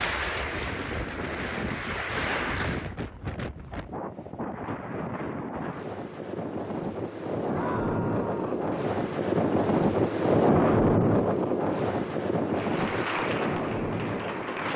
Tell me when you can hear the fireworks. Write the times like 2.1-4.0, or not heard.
not heard.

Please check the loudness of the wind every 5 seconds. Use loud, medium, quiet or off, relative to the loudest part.
medium, loud, loud.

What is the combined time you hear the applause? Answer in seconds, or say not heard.
5 s.